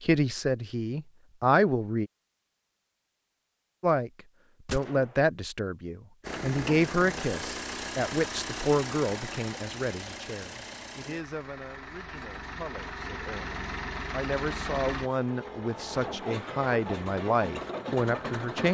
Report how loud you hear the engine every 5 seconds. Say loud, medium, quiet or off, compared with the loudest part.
off, loud, loud, loud.